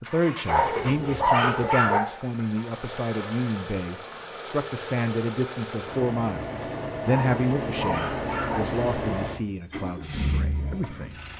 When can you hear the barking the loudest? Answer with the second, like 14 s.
1 s.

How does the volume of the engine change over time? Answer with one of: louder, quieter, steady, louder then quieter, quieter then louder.
louder.